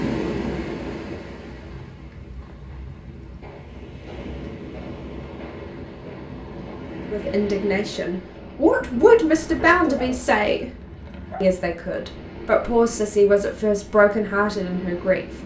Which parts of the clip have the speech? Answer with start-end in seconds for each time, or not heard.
7.1-10.7, 11.4-15.2.